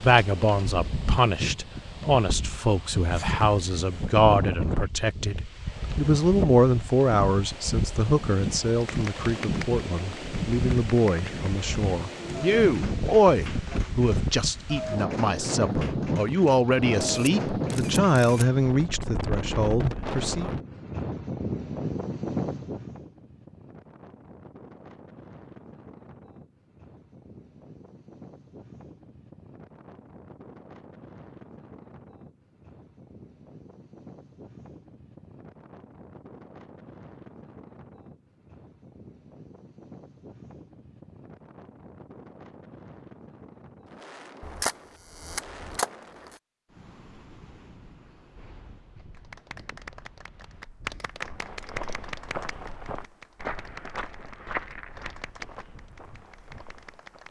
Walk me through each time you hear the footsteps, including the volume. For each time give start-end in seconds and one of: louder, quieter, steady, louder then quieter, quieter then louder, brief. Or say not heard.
51.2-57.2 quieter.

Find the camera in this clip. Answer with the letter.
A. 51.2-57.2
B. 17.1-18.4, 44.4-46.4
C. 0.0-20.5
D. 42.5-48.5
B.